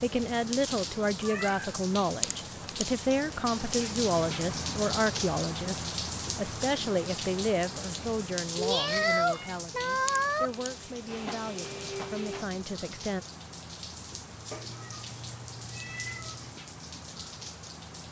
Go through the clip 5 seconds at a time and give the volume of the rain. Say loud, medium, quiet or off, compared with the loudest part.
loud, loud, medium, medium.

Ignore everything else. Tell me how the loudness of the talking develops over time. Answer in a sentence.
The loudness of the talking goes down.